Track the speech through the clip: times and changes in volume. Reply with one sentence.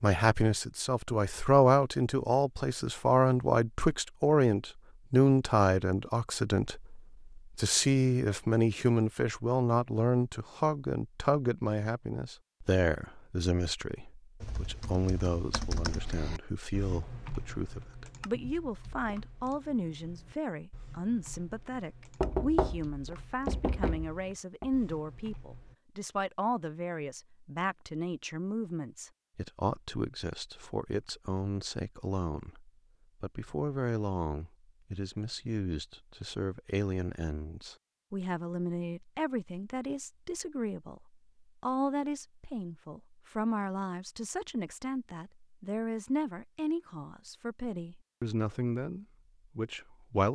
You can hear the speech from 0.0 to 50.3 s, getting quieter.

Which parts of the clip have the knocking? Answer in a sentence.
The knocking can be heard from 22.2 to 24.7 s.